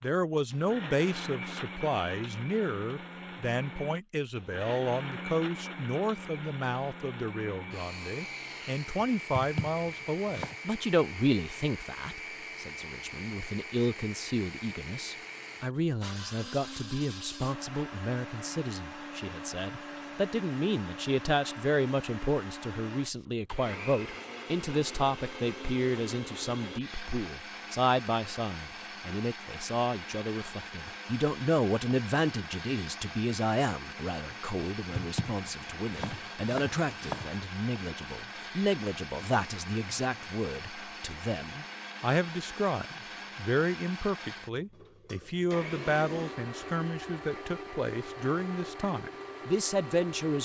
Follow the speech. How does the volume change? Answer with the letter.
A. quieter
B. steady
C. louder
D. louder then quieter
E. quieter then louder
B.